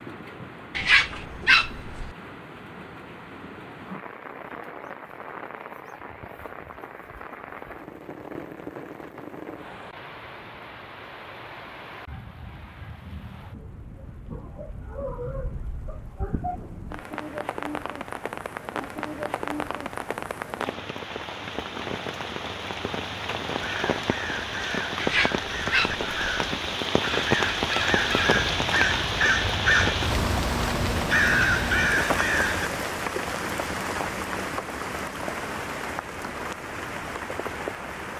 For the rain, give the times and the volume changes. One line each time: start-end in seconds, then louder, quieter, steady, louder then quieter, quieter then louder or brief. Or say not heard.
0.0-38.1 louder.